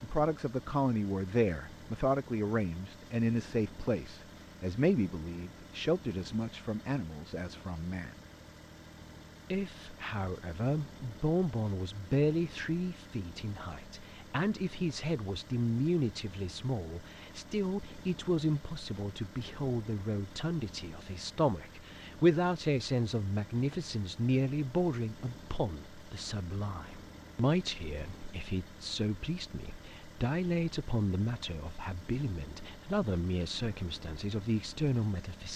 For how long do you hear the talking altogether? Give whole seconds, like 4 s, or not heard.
34 s.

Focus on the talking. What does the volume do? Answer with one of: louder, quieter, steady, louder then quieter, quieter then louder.
steady.